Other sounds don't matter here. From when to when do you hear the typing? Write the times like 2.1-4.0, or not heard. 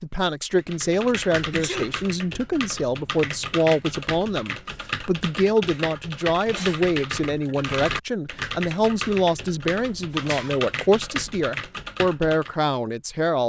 0.6-12.6.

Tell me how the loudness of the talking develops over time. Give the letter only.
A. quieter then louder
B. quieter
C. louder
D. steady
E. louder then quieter
D.